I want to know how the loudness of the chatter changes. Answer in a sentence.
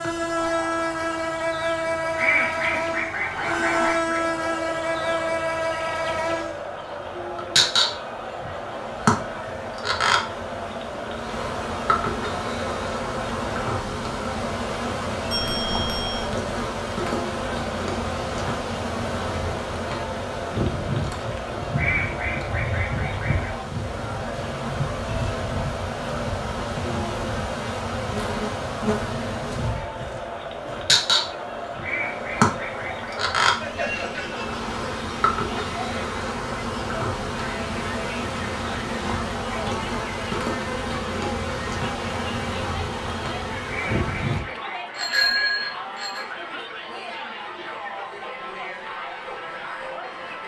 The volume of the chatter stays about the same.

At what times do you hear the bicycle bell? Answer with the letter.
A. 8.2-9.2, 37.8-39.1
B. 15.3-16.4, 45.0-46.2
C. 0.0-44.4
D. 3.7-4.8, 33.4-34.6
B.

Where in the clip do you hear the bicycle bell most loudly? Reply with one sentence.
The loudest moment of the bicycle bell is at 45 seconds.